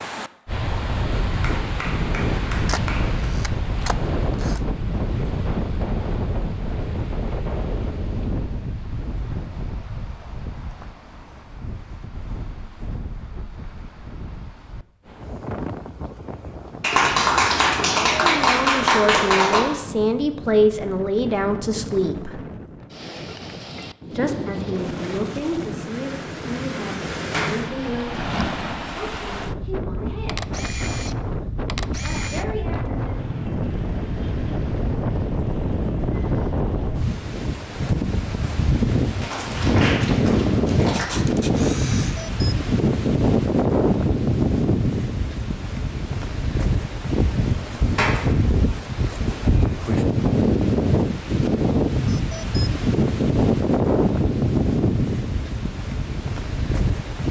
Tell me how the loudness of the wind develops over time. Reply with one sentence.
The volume of the wind goes down, then up.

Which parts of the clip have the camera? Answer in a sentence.
You can hear the camera from 2.5 to 4.6 s, from 30.2 to 32.5 s and from 40.9 to 42.2 s.